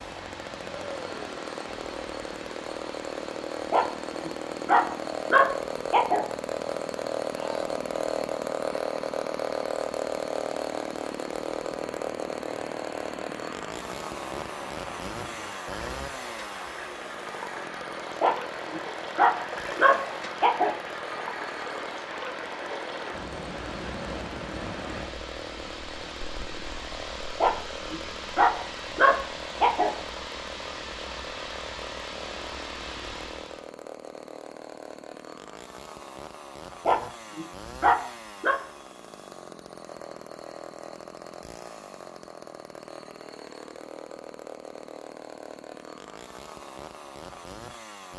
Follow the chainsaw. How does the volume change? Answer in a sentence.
The volume of the chainsaw goes down.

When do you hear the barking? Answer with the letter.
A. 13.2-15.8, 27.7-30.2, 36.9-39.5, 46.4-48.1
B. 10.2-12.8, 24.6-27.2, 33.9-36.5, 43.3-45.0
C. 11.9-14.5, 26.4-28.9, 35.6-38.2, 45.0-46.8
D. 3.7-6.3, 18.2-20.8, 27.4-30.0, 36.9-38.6
D.